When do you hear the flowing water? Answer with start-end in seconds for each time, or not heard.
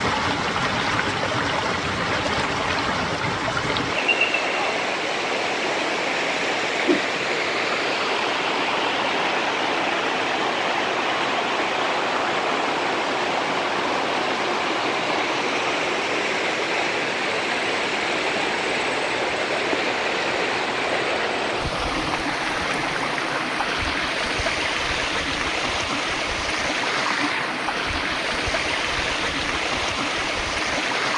0.0-31.1.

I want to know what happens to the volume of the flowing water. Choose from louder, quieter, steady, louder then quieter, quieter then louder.
steady.